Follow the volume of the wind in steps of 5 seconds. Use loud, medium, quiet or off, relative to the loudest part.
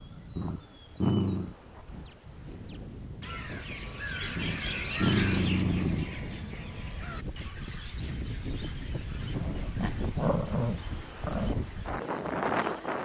quiet, medium, loud.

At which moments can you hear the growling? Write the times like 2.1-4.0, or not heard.
0.3-1.6, 4.3-6.1, 9.3-11.6.